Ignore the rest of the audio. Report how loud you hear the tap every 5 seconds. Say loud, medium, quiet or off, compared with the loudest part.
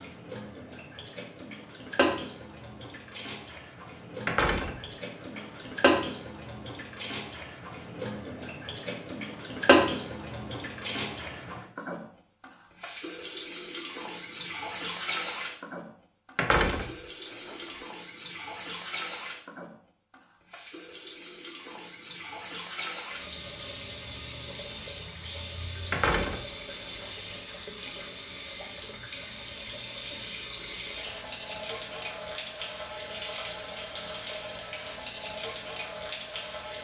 medium, loud, medium, medium, medium, medium, medium, medium.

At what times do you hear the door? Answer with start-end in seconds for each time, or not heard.
4.2-5.7, 16.4-17.8, 25.9-27.1.